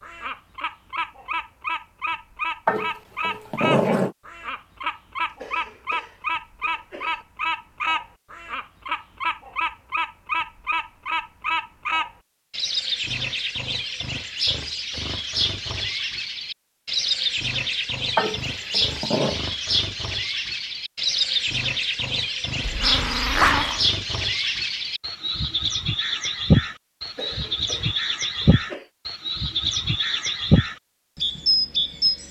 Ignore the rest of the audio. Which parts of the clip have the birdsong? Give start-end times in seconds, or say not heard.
0.0-32.2.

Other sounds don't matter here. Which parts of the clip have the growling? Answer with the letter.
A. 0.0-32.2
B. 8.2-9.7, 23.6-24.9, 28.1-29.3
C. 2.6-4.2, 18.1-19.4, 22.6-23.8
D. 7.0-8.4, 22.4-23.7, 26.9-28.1
C.